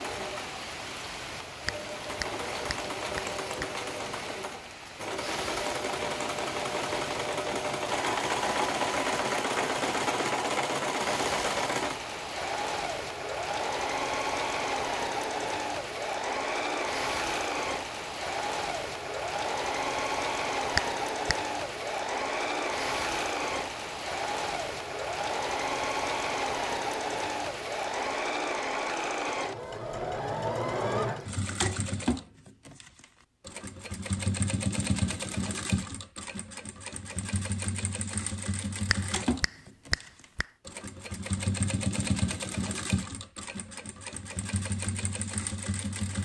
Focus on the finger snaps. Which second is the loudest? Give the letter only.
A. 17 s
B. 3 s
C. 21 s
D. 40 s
C.